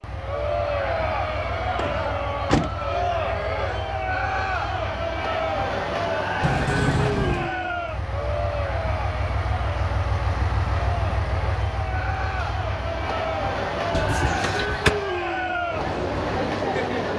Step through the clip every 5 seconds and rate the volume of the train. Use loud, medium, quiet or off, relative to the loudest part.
medium, loud, loud, loud.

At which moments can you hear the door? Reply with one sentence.
You can hear the door from 1.8 to 2.8 s, from 6.4 to 7.5 s and from 13.9 to 14.9 s.